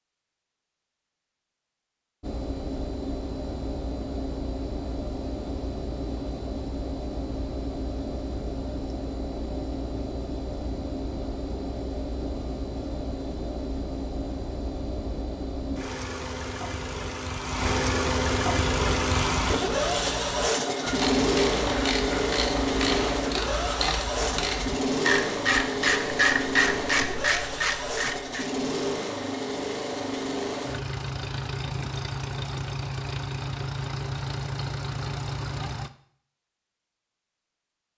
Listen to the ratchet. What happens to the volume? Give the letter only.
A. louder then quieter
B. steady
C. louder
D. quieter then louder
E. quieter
C.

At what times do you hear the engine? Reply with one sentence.
The engine can be heard from 2.2 to 35.9 s.